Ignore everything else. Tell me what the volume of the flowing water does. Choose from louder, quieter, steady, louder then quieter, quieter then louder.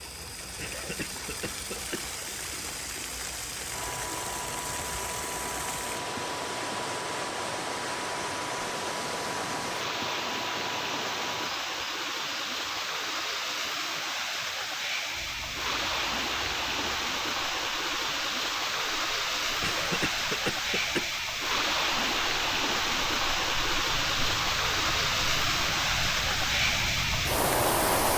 louder.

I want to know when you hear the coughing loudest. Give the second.
20 s.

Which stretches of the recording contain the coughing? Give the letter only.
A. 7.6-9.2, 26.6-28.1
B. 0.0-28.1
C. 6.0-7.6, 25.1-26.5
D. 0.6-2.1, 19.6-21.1
D.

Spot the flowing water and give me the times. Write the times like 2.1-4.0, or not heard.
0.0-28.1.